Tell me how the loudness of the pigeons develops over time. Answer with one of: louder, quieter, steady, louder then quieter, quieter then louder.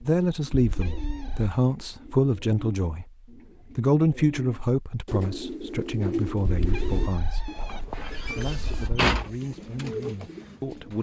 louder.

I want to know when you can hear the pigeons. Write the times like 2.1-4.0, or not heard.
0.0-10.9.